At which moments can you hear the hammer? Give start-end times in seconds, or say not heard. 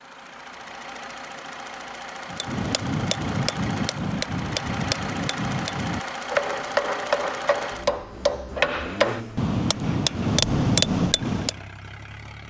2.3-11.5.